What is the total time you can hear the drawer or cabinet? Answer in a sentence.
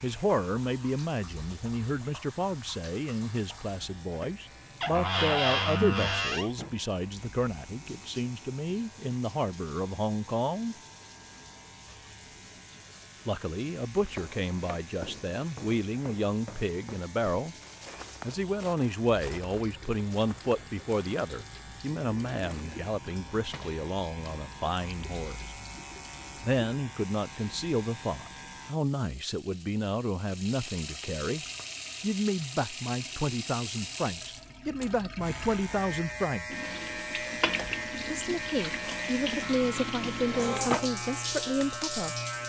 The drawer or cabinet can be heard for 4 seconds in total.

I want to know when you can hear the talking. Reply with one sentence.
You can hear the talking from 0.0 to 10.8 s, from 13.2 to 17.6 s, from 18.2 to 25.5 s, from 26.4 to 36.5 s and from 38.1 to 42.1 s.